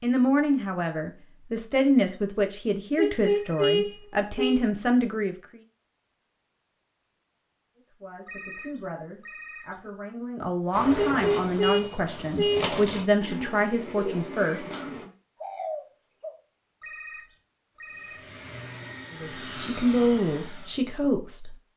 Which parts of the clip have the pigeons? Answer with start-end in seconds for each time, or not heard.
10.7-16.4.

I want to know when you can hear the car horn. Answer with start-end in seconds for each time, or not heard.
3.0-4.6, 10.9-12.7.